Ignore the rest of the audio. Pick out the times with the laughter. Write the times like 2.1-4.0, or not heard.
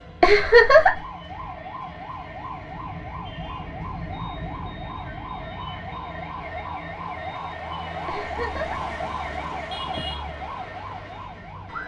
0.2-0.9, 8.1-8.8.